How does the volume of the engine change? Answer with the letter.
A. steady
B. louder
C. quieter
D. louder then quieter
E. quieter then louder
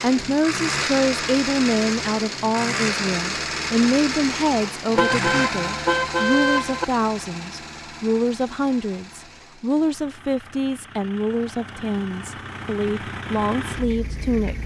E.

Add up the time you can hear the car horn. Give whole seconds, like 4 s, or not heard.
2 s.